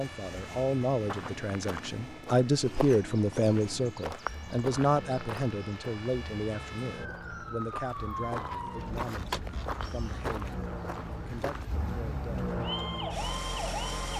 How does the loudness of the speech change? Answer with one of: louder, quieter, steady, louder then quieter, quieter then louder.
quieter.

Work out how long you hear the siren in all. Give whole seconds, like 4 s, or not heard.
14 s.